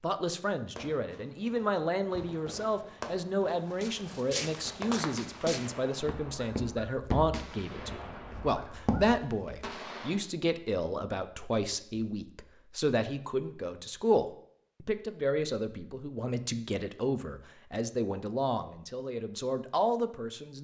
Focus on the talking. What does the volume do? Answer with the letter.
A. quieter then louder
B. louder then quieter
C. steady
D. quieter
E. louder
C.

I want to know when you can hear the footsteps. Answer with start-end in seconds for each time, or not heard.
3.6-9.6.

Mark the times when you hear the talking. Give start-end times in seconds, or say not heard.
0.0-20.5.